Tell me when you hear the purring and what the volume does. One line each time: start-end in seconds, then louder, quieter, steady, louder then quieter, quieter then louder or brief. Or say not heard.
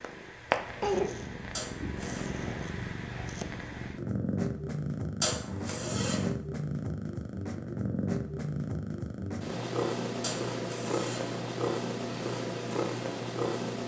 0.0-13.8 steady.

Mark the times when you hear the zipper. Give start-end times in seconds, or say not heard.
1.6-2.3, 5.2-6.2, 10.2-11.3.